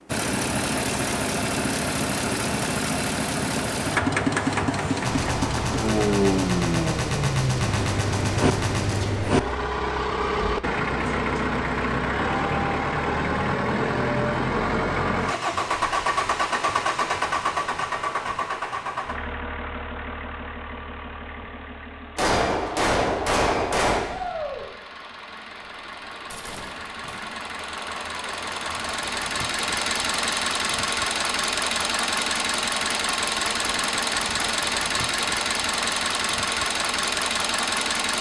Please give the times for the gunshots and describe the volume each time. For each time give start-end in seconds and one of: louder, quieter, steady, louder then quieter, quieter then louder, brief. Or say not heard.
5.0-9.4 steady
22.1-24.0 brief
26.3-27.2 brief.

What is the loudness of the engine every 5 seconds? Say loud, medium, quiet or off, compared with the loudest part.
loud, loud, loud, loud, quiet, medium, loud, loud.